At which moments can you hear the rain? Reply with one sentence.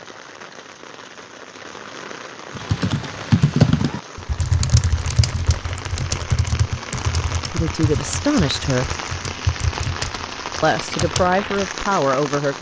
You can hear the rain from 0.0 to 12.5 s.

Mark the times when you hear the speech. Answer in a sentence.
You can hear the speech from 7.5 to 8.9 s and from 10.6 to 12.5 s.